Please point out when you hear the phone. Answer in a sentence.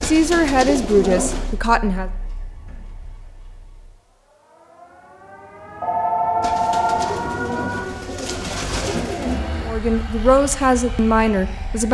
The phone can be heard from 5.8 to 7.1 s.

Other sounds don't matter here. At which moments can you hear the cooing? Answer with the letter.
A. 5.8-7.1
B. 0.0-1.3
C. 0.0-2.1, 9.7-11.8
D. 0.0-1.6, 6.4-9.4
D.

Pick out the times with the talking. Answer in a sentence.
You can hear the talking from 0.0 to 2.1 s and from 9.7 to 11.8 s.